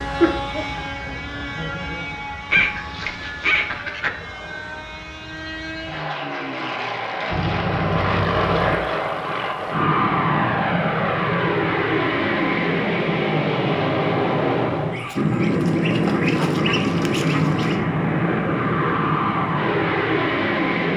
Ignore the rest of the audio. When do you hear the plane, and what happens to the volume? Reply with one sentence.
You can hear the plane from 0.0 to 20.9 s, getting louder.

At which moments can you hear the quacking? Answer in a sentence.
The quacking can be heard from 2.5 to 4.1 s, from 7.3 to 8.8 s and from 14.9 to 17.8 s.